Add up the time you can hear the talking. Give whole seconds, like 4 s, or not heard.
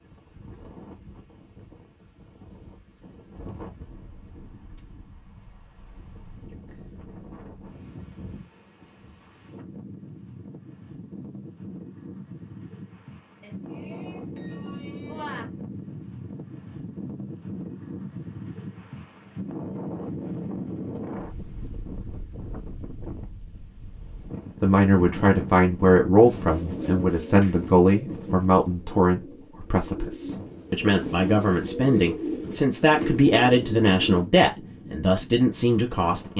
12 s.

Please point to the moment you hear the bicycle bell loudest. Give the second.
15 s.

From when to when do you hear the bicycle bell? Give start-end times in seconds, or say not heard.
13.4-15.4.